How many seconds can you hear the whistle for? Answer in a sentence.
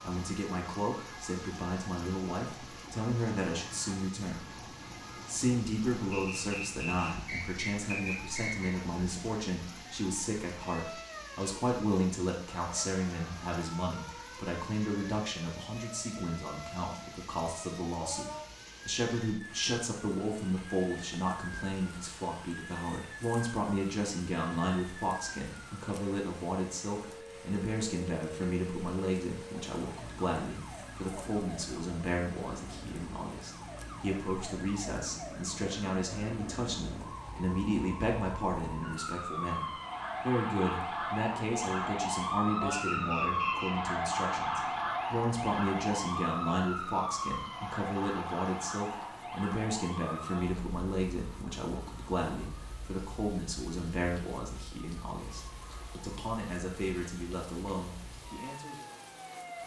You can hear the whistle for 4 seconds altogether.